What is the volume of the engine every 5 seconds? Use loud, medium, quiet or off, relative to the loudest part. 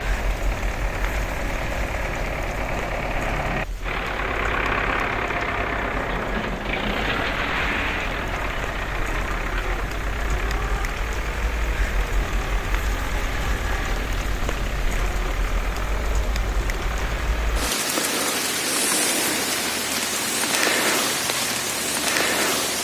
loud, loud, medium, medium, medium.